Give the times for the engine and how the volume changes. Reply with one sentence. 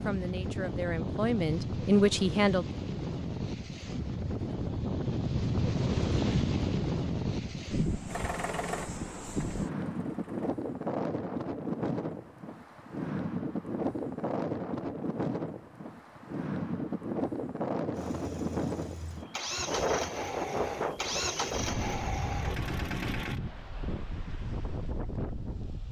You can hear the engine briefly from 8.1 to 10.6 s; and from 17.9 to 23.4 s, getting louder.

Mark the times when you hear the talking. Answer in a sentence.
You can hear the talking from 0.1 to 2.6 s.